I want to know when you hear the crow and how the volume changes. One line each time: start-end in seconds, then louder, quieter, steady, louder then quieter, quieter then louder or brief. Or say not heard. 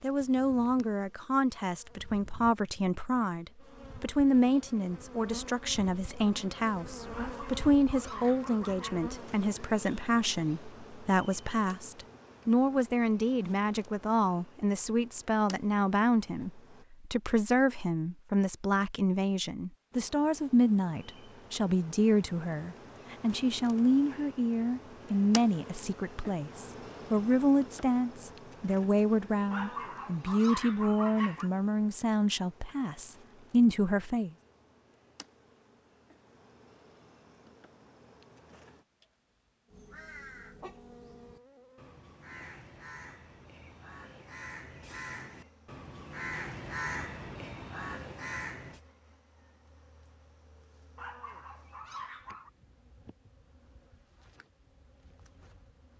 39.7-48.8 louder.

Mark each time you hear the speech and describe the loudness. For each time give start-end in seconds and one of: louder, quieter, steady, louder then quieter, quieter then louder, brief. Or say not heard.
0.0-34.3 steady.